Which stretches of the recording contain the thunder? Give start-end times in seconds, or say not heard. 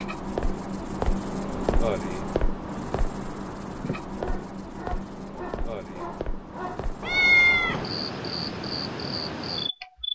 not heard.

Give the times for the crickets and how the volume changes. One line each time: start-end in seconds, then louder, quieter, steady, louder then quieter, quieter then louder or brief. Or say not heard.
0.0-10.1 quieter then louder.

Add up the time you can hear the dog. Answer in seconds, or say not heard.
3 s.